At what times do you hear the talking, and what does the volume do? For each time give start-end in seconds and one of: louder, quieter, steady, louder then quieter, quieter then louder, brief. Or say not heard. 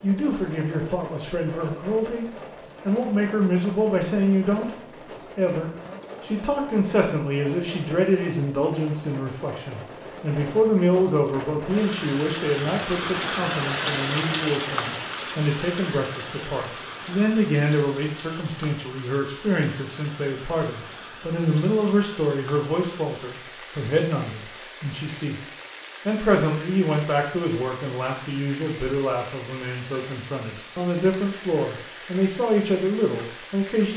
0.0-2.2 brief
2.9-33.9 steady.